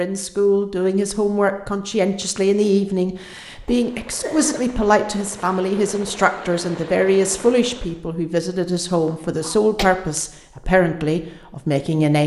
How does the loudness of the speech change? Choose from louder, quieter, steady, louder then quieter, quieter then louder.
steady.